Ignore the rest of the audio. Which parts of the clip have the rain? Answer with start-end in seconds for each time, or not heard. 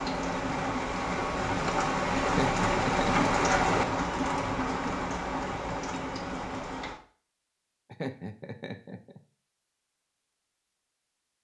0.0-7.0.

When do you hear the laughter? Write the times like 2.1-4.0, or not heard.
2.2-3.1, 7.9-9.2.